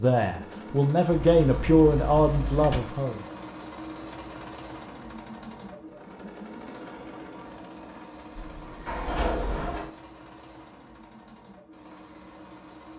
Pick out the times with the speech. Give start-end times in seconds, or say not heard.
0.0-3.2.